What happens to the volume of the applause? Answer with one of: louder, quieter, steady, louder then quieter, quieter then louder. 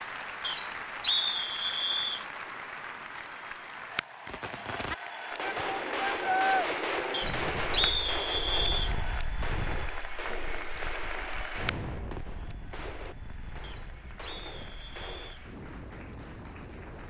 quieter.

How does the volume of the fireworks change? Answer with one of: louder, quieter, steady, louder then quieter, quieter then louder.
quieter.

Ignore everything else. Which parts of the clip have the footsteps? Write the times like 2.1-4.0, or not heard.
not heard.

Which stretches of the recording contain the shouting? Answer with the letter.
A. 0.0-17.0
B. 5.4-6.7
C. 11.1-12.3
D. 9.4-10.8
B.